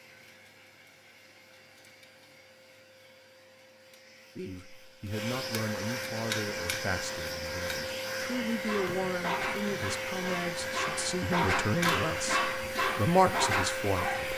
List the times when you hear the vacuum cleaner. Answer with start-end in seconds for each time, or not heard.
0.0-14.3.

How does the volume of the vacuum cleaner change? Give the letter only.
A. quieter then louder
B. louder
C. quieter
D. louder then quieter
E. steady
B.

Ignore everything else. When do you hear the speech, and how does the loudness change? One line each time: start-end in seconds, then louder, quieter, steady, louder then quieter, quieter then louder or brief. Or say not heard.
4.3-14.3 louder.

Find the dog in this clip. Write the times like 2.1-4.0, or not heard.
8.7-14.3.